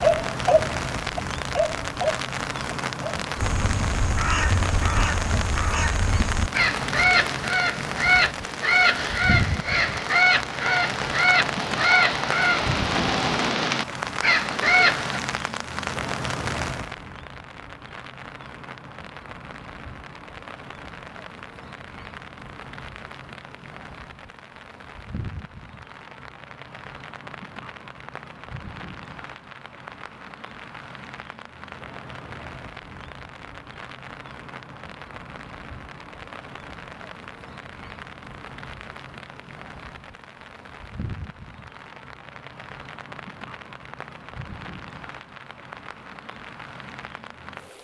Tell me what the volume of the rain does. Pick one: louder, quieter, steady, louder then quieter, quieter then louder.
quieter.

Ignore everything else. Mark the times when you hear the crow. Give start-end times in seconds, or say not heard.
3.4-15.2.